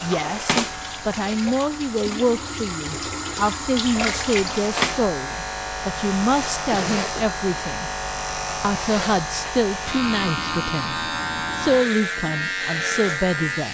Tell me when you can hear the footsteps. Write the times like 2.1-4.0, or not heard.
not heard.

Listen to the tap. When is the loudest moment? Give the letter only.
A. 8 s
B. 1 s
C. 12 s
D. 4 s
D.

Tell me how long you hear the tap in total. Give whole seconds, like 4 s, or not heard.
5 s.